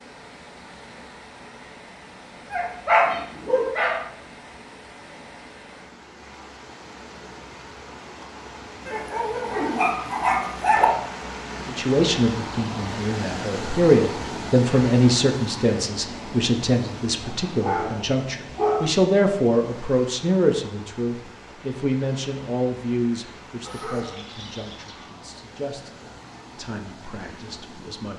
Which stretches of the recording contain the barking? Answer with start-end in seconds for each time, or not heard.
2.5-4.0, 8.8-10.8, 17.5-18.9, 23.6-25.1.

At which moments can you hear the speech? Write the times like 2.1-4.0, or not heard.
11.7-28.1.